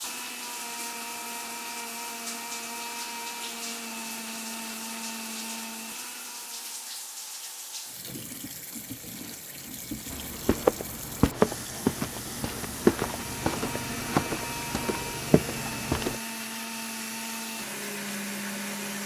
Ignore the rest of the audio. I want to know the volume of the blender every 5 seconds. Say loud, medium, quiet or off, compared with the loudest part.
loud, medium, loud, loud.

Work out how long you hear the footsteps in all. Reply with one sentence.
You can hear the footsteps for 6 seconds altogether.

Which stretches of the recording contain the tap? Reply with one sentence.
The tap can be heard from 0.0 to 19.0 s.